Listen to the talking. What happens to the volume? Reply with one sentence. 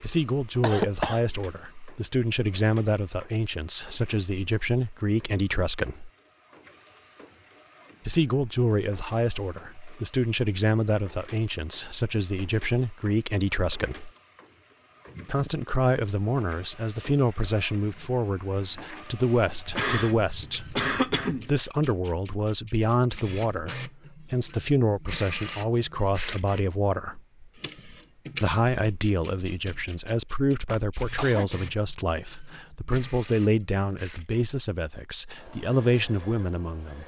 The loudness of the talking stays about the same.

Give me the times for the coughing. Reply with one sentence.
You can hear the coughing from 0.6 to 1.2 s, from 19.6 to 21.6 s and from 30.6 to 31.5 s.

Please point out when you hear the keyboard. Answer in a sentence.
You can't hear the keyboard here.